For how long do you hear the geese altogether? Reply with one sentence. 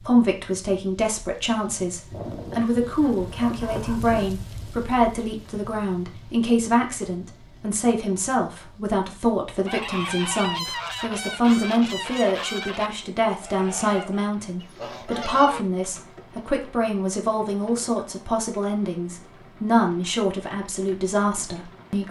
The geese can be heard for 6 seconds in total.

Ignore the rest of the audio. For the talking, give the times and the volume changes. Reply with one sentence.
You can hear the talking from 0.0 to 22.0 s, at a steady volume.